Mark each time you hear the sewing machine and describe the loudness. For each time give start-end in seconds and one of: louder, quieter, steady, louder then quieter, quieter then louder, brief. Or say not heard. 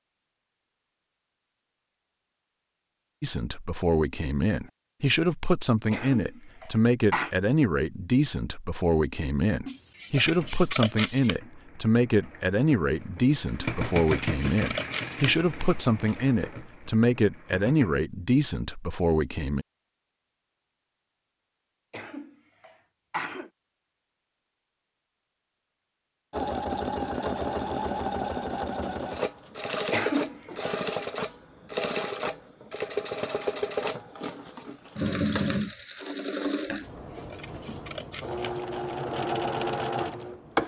10.2-18.0 louder then quieter
26.3-40.6 steady.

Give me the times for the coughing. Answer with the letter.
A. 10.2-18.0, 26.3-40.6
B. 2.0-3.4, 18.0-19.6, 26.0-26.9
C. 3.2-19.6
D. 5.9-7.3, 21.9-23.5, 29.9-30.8
D.